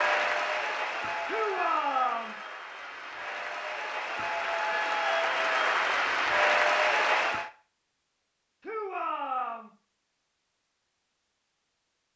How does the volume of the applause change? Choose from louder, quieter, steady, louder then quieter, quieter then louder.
quieter then louder.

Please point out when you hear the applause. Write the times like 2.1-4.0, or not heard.
0.0-7.5.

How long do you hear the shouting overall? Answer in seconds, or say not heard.
2 s.